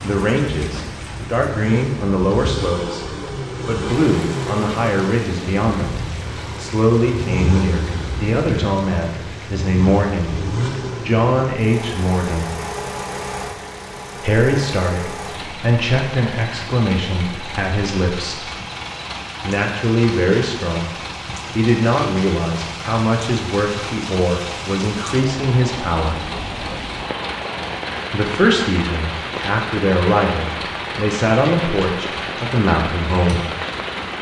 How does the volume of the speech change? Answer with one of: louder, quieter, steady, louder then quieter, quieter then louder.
steady.